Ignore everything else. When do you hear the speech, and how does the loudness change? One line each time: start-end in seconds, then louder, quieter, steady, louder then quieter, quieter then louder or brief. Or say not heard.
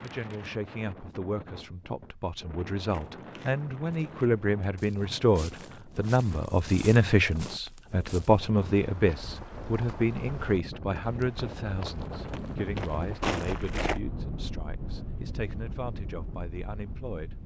0.0-17.4 louder then quieter.